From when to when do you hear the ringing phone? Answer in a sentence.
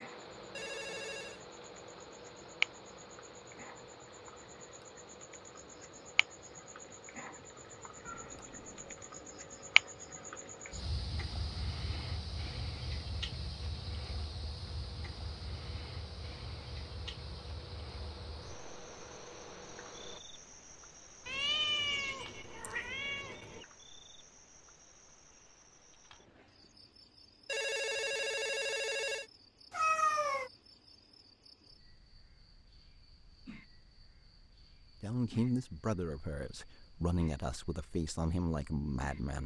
The ringing phone can be heard from 0.5 to 1.4 s and from 27.4 to 29.3 s.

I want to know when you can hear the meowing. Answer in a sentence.
You can hear the meowing from 8.1 to 8.9 s, from 21.2 to 23.6 s and from 29.7 to 30.5 s.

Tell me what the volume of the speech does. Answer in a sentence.
The volume of the speech goes down, then up.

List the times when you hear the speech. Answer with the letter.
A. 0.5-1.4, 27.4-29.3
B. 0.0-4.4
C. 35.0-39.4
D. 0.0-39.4
C.